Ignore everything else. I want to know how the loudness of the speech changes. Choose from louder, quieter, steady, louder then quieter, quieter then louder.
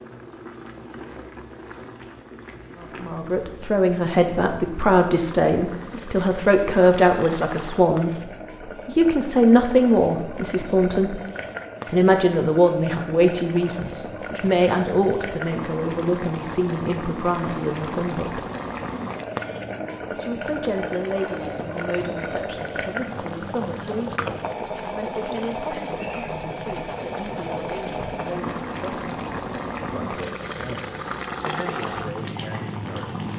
quieter.